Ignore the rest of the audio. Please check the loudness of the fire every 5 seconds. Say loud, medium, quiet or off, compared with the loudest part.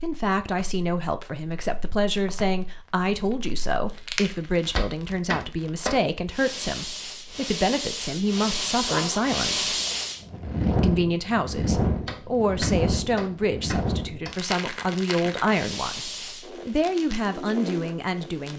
medium, loud, loud, medium.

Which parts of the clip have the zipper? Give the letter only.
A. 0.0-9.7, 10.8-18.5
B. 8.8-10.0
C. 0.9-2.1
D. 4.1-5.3
B.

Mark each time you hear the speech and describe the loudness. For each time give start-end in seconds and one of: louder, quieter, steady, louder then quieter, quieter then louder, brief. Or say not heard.
0.0-9.7 steady
10.8-18.5 steady.